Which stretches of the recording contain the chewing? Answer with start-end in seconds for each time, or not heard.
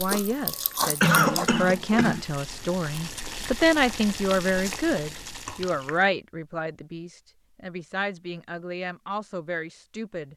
0.0-2.0.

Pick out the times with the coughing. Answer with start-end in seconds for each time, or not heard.
1.0-2.2, 5.5-6.1.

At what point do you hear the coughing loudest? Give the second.
1 s.